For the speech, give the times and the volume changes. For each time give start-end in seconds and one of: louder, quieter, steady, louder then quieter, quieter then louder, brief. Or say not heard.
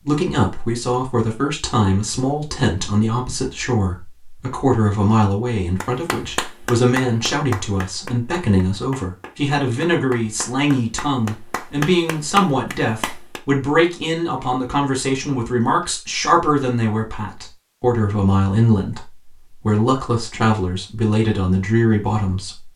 0.0-22.7 steady.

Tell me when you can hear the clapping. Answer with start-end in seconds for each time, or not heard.
5.8-13.4.